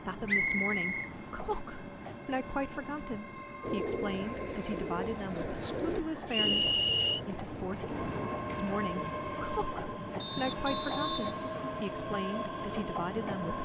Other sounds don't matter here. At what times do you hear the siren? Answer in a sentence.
The siren can't be heard in this clip.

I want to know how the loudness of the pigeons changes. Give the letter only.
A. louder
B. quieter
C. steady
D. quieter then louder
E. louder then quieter
B.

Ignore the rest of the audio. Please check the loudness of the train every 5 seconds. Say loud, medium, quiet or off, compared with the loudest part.
medium, loud, loud.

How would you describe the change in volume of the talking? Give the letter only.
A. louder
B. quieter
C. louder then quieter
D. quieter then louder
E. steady
E.